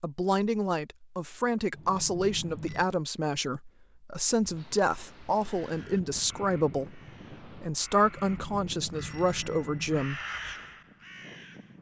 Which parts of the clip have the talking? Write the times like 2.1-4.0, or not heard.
0.0-10.2.